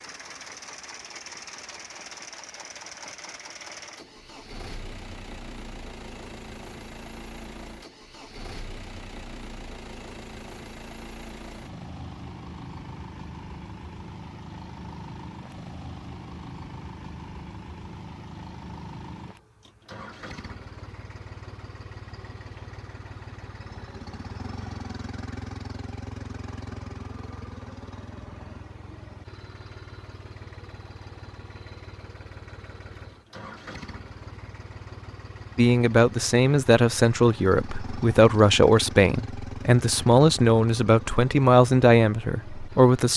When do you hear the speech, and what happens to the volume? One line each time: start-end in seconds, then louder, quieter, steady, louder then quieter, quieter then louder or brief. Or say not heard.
35.5-43.1 steady.